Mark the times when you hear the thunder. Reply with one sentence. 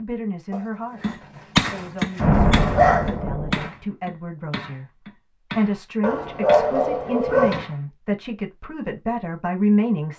The thunder can be heard from 2.1 to 3.7 s.